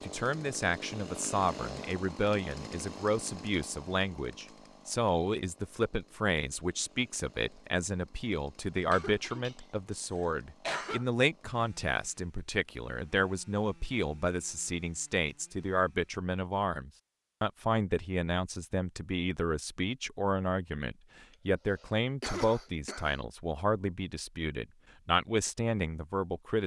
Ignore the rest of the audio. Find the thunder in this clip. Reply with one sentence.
The thunder can't be heard in this clip.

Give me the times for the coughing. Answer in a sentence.
You can hear the coughing from 8.9 to 11.1 s and from 21.8 to 23.1 s.